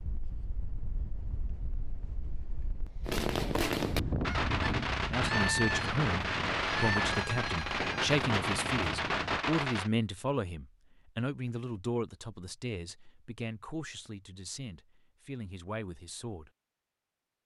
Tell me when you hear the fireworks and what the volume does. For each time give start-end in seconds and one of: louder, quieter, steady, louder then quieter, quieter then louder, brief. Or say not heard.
3.0-9.9 steady.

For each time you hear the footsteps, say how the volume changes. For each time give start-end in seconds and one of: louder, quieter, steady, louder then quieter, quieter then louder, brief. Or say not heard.
not heard.